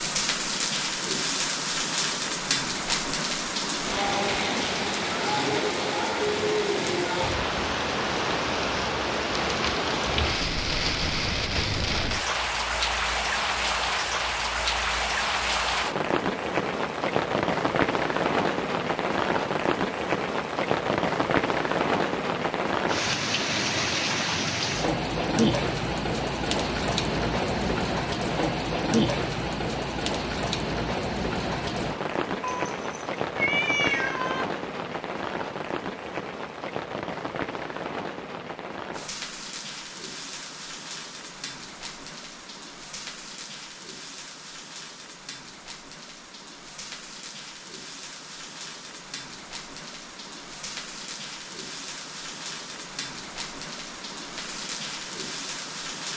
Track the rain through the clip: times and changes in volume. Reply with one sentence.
The rain can be heard from 0.0 to 56.1 s, getting quieter.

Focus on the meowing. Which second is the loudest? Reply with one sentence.
The loudest moment of the meowing is at 34 seconds.